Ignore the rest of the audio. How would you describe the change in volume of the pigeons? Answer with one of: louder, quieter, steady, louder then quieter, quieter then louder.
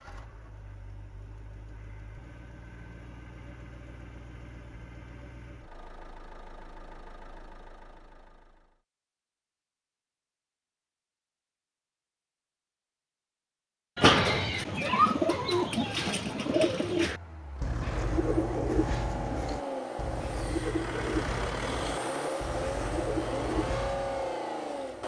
quieter.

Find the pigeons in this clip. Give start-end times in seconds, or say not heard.
13.9-24.3.